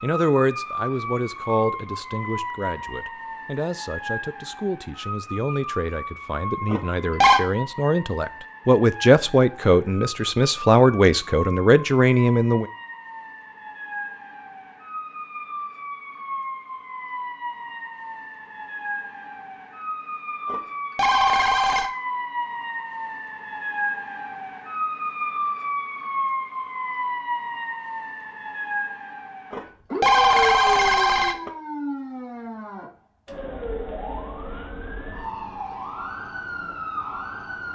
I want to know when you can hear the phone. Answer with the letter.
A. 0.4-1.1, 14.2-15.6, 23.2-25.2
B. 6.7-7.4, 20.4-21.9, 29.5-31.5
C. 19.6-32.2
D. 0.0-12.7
B.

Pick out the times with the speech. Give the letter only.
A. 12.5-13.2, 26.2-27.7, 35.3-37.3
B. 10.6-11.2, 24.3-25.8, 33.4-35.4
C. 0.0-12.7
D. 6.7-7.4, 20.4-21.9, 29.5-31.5
C.